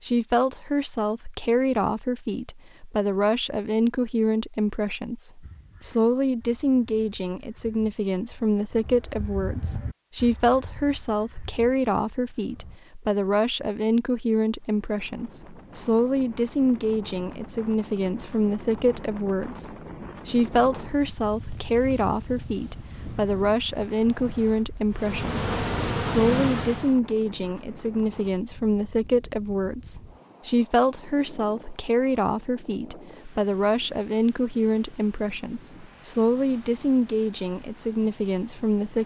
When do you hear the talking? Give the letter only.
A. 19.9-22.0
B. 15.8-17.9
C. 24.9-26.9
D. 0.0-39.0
D.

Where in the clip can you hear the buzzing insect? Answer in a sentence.
The buzzing insect can be heard from 24.9 to 26.9 s.